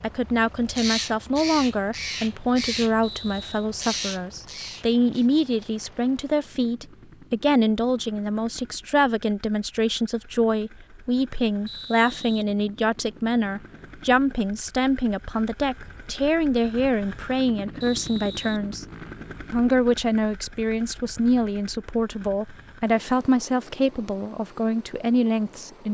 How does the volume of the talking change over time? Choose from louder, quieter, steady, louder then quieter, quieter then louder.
steady.